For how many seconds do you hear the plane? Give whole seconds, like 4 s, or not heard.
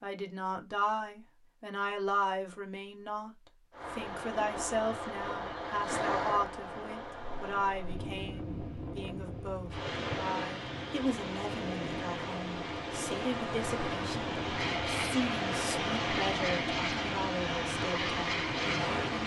5 s.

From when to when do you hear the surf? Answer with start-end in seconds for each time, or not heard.
3.7-19.2.